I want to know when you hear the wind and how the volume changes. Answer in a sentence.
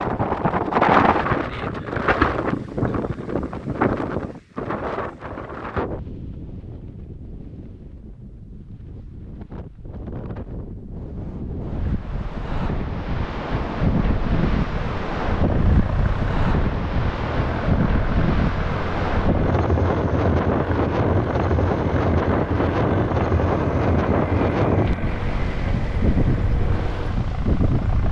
You can hear the wind from 0.0 to 28.0 s, getting quieter then louder.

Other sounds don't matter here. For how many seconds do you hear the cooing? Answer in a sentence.
The cooing can't be heard in this clip.